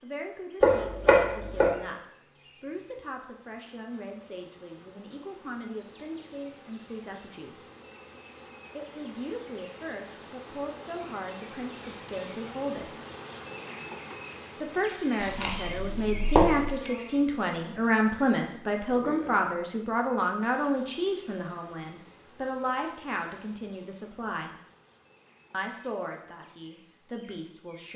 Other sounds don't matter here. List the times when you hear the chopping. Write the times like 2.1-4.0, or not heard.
0.6-1.7, 15.2-16.7.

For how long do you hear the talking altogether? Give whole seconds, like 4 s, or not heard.
24 s.